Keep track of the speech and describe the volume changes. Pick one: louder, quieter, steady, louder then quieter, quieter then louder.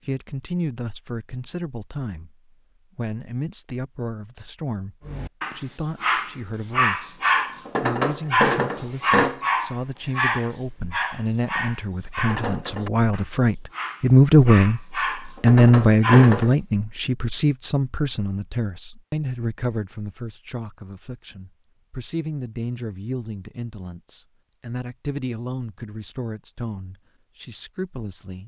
louder then quieter.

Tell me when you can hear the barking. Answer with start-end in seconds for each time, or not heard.
5.0-16.6.